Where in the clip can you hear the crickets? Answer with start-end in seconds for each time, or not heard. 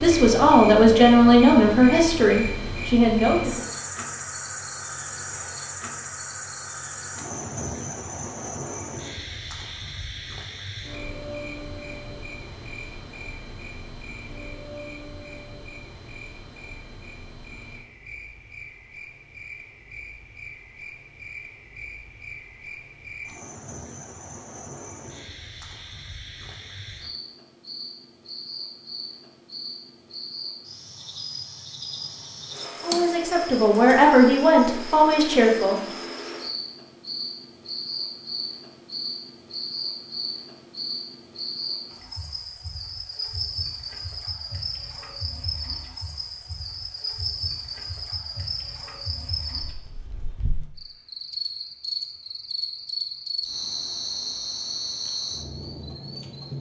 0.0-56.5.